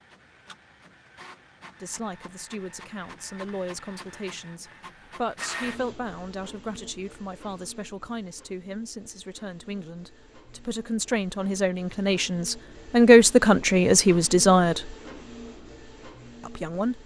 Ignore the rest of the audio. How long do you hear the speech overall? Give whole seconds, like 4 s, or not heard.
14 s.